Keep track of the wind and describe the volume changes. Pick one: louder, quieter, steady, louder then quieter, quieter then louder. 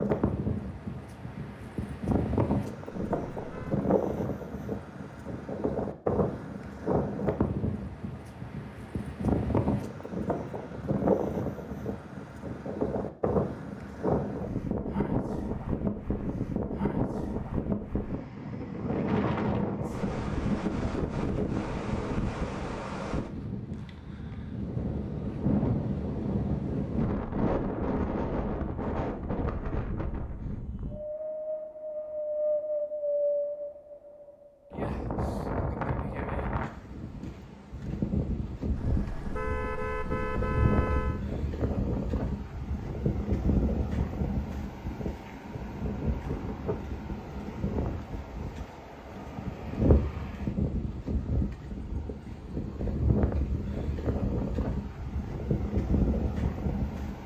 steady.